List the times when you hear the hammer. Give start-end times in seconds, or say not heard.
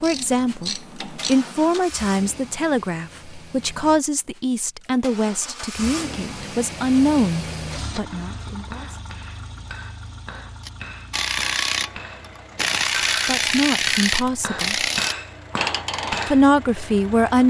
8.1-16.9.